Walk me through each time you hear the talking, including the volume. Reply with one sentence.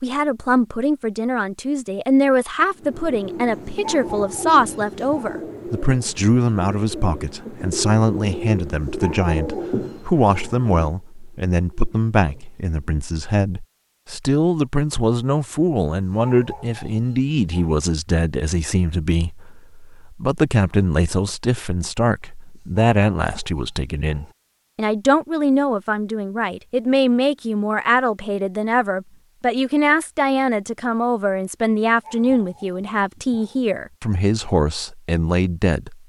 You can hear the talking from 0.0 to 36.0 s, at a steady volume.